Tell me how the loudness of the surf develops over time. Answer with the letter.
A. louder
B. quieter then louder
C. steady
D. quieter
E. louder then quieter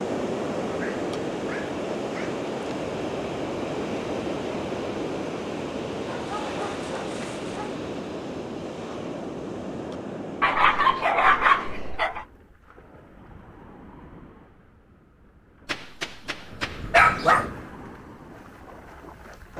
B.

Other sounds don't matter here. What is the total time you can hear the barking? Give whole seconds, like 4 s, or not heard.
7 s.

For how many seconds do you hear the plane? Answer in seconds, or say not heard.
not heard.